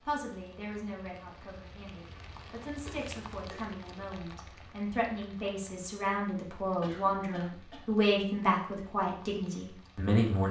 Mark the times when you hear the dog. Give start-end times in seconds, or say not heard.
not heard.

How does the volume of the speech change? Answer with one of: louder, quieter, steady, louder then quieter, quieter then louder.
louder.